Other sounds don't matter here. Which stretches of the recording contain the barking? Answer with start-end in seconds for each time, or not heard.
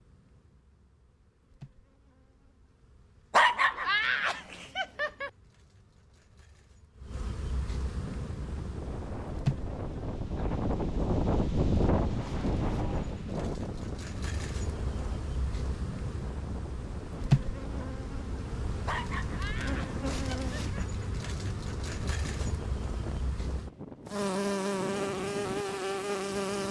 3.3-5.3, 18.9-20.8.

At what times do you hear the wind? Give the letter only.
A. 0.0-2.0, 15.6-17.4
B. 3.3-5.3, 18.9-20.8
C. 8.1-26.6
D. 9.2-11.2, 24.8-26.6
C.